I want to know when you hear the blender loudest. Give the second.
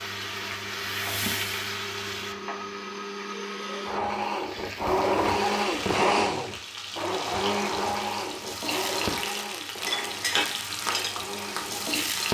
6 s.